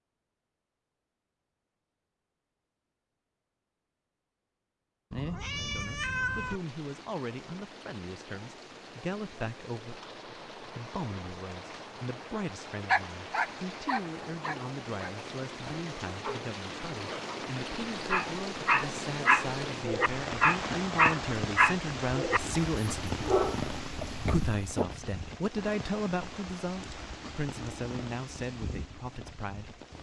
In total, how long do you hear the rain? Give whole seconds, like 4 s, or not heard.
24 s.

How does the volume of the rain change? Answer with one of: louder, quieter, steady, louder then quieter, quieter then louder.
louder then quieter.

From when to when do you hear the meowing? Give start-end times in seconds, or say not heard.
5.1-6.6.